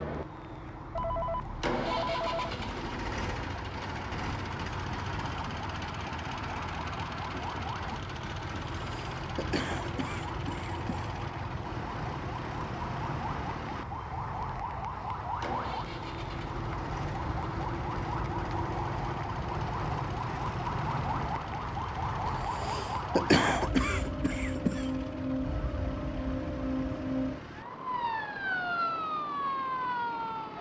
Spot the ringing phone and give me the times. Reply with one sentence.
You can hear the ringing phone from 0.9 to 2.5 s.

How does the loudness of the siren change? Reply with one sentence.
The loudness of the siren goes up.